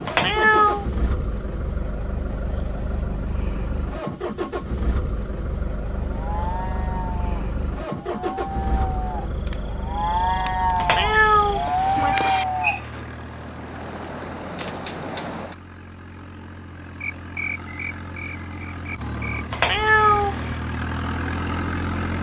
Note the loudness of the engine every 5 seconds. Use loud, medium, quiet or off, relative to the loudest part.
loud, loud, medium, medium, loud.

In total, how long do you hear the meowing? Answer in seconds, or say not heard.
3 s.